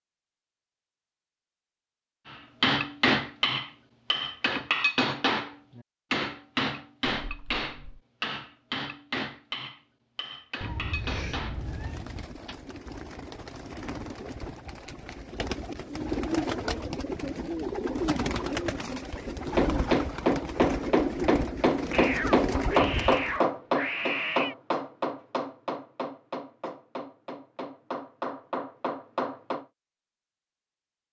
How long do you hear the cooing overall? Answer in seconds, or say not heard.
12 s.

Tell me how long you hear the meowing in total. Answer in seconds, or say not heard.
5 s.